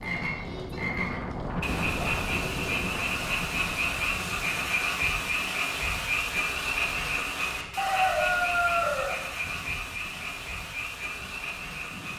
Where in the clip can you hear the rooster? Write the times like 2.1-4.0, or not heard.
7.8-9.8.